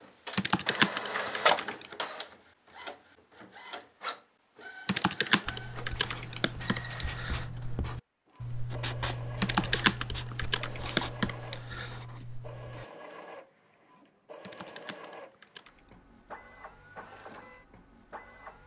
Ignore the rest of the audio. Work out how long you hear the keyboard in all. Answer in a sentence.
You can hear the keyboard for 8 seconds altogether.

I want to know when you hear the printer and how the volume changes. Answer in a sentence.
You can hear the printer from 0.0 to 18.6 s, getting quieter.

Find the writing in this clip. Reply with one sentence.
You can hear the writing from 5.5 to 12.8 s.